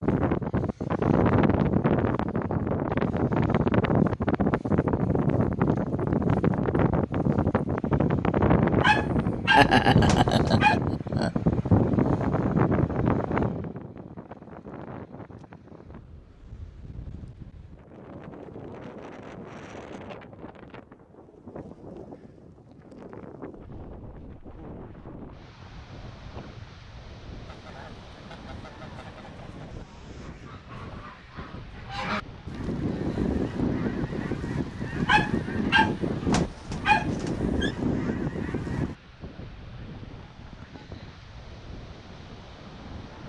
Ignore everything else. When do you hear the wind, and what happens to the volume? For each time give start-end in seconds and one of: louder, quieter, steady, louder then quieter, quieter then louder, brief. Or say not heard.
0.0-43.2 quieter.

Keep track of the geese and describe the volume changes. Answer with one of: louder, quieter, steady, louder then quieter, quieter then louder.
louder.